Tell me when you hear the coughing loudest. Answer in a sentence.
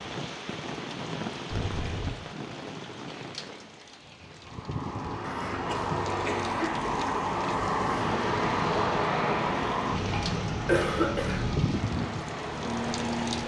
The loudest moment of the coughing is at 11 seconds.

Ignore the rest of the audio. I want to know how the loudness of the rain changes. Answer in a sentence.
The volume of the rain goes down, then up.